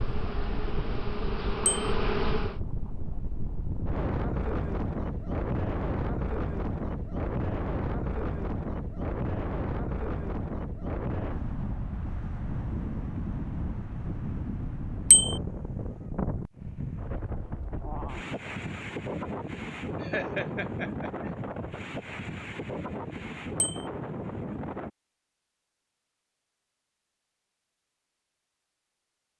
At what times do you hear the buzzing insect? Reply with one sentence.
You can hear the buzzing insect from 0.0 to 2.6 s.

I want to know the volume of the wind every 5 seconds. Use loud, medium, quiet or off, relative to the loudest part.
loud, loud, loud, loud, loud, off.